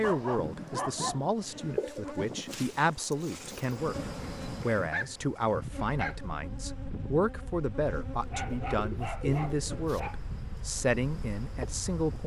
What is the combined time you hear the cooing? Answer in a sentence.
You can hear the cooing for 4 seconds altogether.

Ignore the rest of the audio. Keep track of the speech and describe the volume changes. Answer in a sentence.
The volume of the speech stays about the same.